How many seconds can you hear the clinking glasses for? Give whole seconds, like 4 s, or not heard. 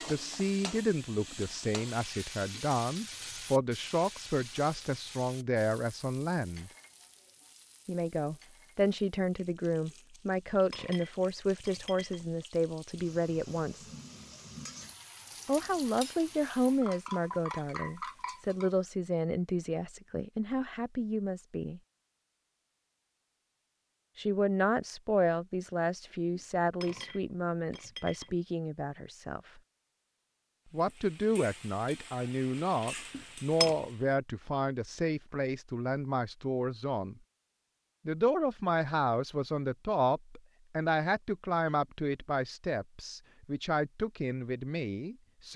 5 s.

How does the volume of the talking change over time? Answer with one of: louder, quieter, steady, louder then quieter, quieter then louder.
steady.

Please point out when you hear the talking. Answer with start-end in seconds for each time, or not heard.
0.1-6.7, 7.8-13.8, 15.4-21.8, 24.1-29.6, 30.7-37.1, 38.0-45.5.